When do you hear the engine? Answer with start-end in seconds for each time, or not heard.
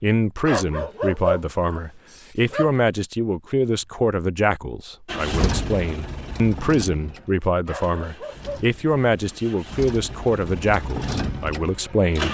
5.0-12.2.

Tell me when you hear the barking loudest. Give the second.
1 s.